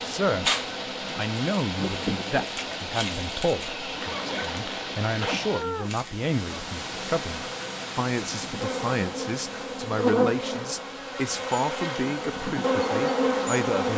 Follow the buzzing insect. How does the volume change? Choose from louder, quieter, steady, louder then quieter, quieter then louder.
quieter then louder.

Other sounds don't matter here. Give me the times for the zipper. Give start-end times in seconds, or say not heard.
4.0-5.5.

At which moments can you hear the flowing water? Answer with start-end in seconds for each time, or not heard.
0.0-13.9.